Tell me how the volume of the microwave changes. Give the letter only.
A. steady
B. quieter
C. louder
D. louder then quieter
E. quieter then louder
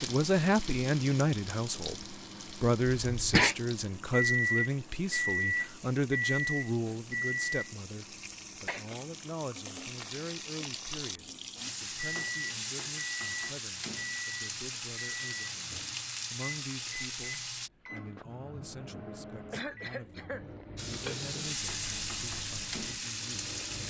B.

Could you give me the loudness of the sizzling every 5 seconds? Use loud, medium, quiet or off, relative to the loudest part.
medium, medium, loud, loud, loud.